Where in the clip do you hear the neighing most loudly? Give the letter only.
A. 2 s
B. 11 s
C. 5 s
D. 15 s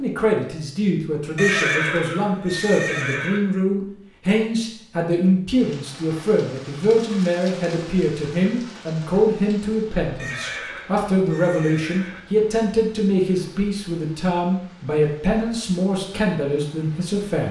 A.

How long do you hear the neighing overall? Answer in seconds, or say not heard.
4 s.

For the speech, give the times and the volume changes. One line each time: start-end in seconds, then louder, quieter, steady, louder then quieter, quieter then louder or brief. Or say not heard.
0.0-17.4 steady.